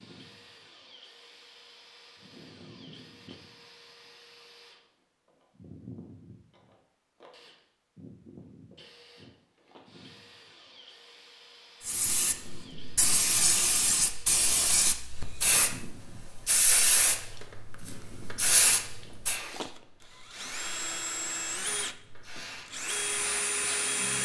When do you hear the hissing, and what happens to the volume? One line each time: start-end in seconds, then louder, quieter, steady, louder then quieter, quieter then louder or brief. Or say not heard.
11.8-23.9 quieter.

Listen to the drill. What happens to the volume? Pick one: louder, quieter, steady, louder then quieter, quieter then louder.
louder.